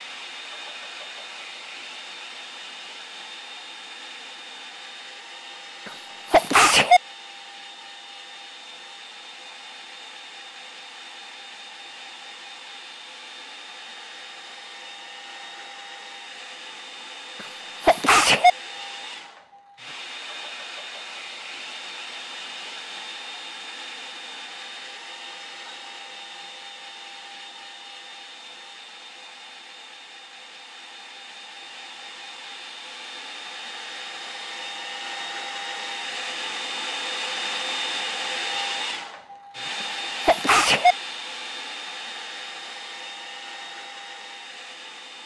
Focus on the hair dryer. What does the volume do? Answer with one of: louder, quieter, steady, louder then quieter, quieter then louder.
louder.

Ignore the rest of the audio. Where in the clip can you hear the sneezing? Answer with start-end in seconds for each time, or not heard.
5.8-7.0, 17.8-18.5, 39.8-41.0.